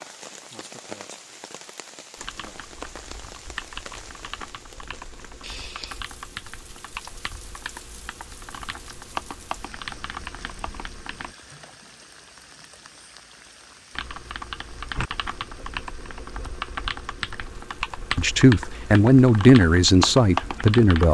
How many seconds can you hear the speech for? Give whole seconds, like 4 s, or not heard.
3 s.